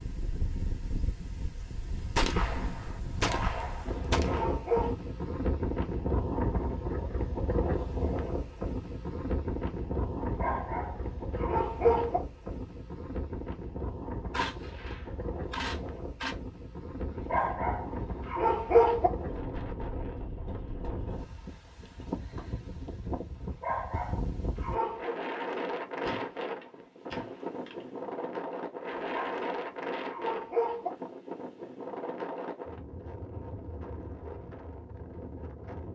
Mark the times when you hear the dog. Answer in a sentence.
You can hear the dog from 3.2 to 5.0 s, from 10.2 to 12.2 s, from 17.1 to 19.1 s, from 23.4 to 25.1 s and from 28.9 to 30.9 s.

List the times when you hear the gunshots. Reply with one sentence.
You can hear the gunshots from 2.1 to 4.5 s, from 14.3 to 16.4 s and from 26.0 to 27.9 s.